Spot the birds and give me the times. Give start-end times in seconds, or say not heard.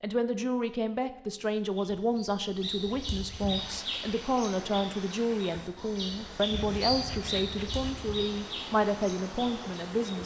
1.7-10.2.